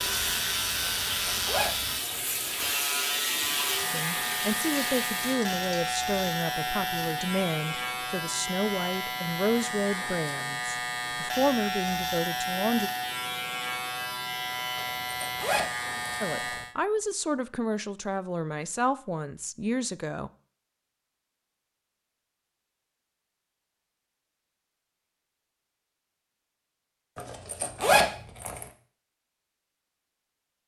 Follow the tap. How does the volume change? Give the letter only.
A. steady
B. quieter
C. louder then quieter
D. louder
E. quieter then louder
A.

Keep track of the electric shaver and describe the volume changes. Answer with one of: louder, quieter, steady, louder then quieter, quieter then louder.
steady.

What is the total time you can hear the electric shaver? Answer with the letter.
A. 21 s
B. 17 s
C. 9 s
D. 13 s
B.